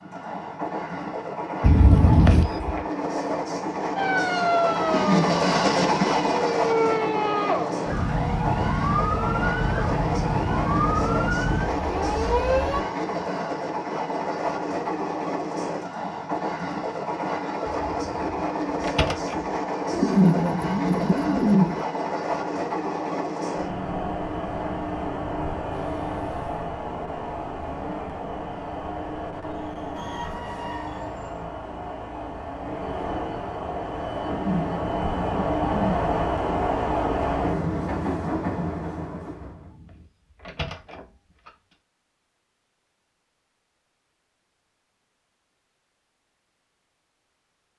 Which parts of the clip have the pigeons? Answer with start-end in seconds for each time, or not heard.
4.8-6.4, 19.9-21.8, 34.2-36.0.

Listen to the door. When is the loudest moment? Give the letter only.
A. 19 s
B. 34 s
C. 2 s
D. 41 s
C.